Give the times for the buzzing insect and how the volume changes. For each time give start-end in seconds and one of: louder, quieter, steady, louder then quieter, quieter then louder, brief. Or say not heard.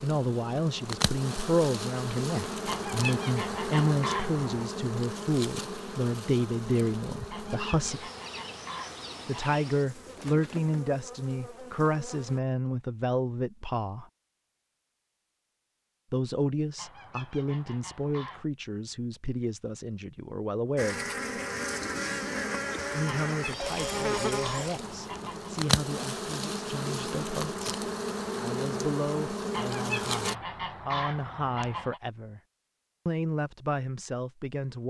0.0-12.4 quieter
20.8-30.4 steady.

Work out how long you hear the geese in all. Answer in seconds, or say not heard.
11 s.